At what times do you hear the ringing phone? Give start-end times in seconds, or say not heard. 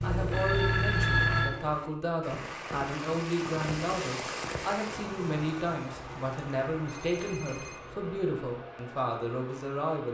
0.0-1.5, 6.8-7.8.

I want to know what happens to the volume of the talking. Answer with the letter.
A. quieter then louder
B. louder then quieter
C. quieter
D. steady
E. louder
D.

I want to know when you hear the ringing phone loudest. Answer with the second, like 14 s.
1 s.